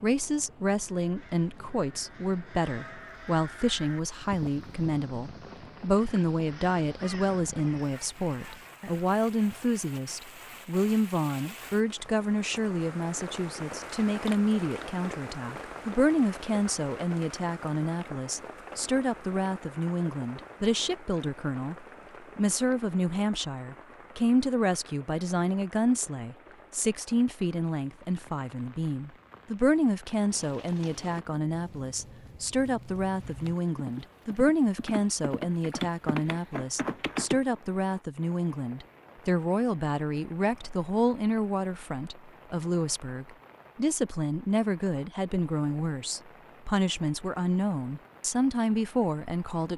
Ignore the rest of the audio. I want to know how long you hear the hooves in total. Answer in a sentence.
The hooves can be heard for 7 seconds in total.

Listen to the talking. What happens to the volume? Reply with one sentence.
The volume of the talking stays about the same.